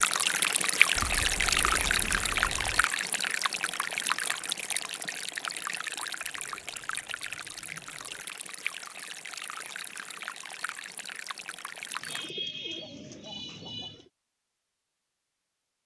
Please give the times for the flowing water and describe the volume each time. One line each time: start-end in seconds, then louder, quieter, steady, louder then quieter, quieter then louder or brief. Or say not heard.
0.0-12.3 quieter.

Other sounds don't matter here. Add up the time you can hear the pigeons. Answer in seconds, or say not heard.
6 s.